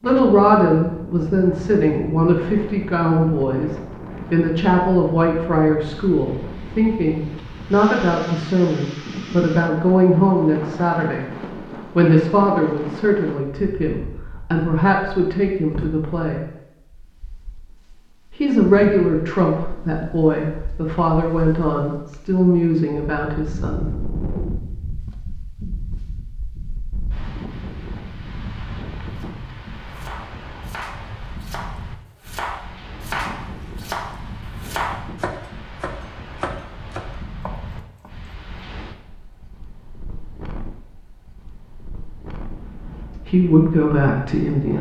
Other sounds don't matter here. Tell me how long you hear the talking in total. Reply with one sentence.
You can hear the talking for 23 seconds altogether.